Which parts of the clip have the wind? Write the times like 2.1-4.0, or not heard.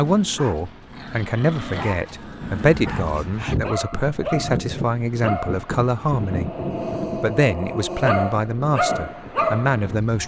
2.4-10.2.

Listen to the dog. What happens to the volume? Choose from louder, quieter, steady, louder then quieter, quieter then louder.
louder.